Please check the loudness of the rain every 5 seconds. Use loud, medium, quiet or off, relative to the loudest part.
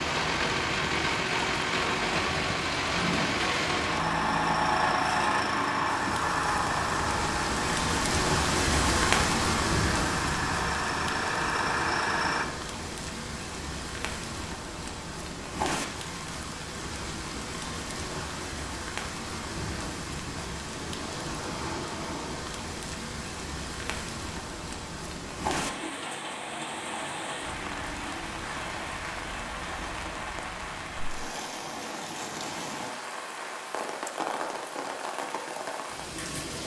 medium, loud, medium, medium, medium, medium, medium, medium.